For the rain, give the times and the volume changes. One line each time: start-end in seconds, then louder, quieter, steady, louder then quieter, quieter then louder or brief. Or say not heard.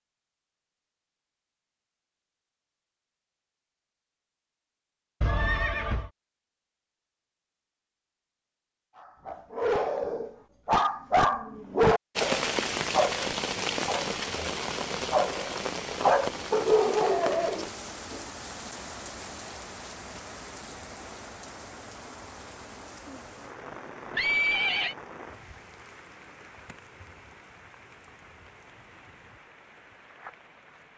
12.2-30.9 quieter.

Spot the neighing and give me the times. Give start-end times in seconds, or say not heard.
5.2-6.1, 24.1-24.9.